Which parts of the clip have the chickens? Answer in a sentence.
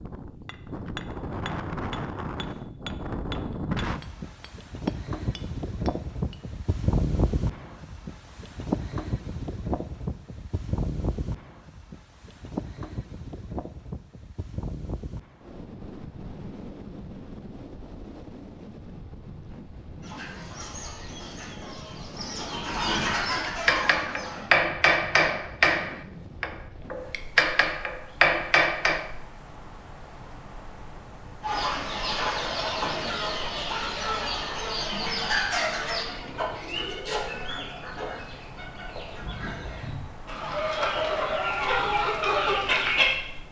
The chickens can be heard from 20.0 to 24.5 s and from 31.4 to 43.1 s.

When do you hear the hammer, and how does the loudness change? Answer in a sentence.
The hammer can be heard from 0.5 to 6.4 s, getting quieter; and from 23.4 to 29.1 s, getting quieter then louder.